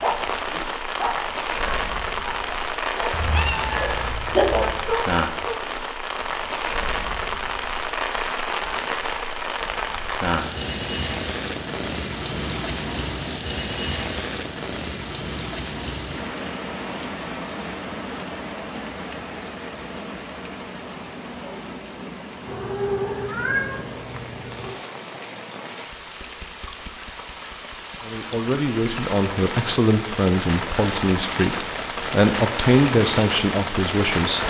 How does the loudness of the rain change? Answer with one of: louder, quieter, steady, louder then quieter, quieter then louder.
quieter then louder.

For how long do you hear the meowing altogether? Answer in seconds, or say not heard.
4 s.